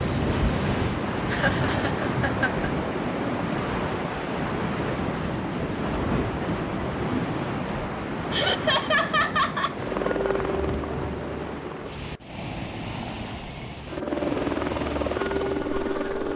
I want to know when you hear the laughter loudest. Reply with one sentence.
The volume of the laughter peaks at 9 seconds.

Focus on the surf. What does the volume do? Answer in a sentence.
The volume of the surf goes down.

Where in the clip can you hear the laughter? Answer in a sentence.
The laughter can be heard from 1.3 to 2.7 s and from 8.3 to 9.8 s.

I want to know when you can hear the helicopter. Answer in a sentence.
The helicopter can be heard from 0.0 to 2.0 s, from 9.8 to 12.2 s and from 13.8 to 16.3 s.